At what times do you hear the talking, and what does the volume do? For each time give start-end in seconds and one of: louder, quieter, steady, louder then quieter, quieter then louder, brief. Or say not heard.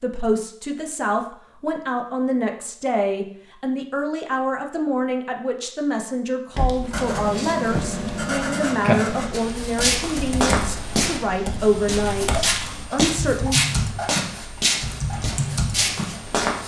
0.0-13.6 steady.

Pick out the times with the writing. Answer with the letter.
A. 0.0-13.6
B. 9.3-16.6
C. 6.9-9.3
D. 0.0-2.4
C.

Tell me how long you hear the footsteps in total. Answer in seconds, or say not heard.
7 s.